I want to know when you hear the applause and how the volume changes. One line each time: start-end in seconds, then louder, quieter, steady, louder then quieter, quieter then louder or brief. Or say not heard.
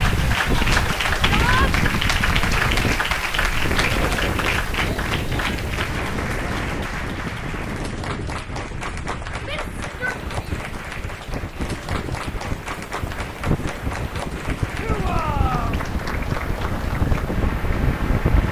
0.0-18.4 quieter.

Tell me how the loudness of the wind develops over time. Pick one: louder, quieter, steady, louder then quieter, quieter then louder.
quieter then louder.